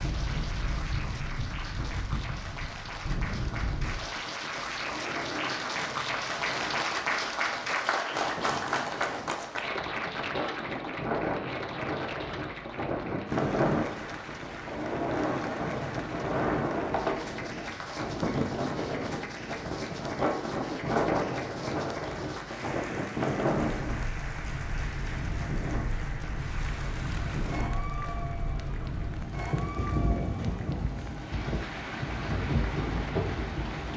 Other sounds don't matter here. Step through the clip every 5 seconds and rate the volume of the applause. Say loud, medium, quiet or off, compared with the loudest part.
medium, loud, medium, medium, medium, medium, medium.